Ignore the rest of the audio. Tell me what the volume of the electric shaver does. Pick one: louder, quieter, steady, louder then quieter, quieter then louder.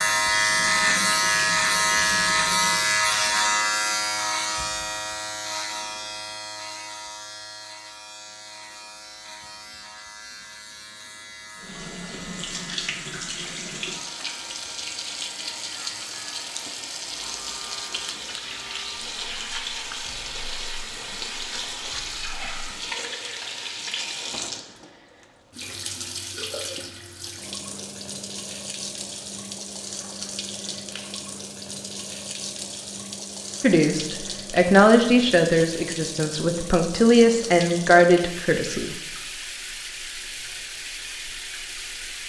quieter.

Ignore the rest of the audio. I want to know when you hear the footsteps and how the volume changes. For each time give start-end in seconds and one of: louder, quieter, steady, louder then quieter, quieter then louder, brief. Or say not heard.
not heard.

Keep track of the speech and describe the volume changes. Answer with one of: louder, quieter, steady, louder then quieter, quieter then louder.
quieter then louder.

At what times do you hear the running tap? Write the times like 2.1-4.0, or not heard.
0.0-3.0, 11.6-42.2.